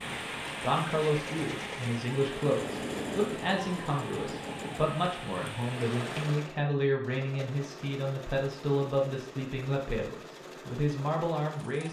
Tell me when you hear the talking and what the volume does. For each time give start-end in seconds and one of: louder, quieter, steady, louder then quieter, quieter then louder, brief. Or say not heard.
0.1-11.8 steady.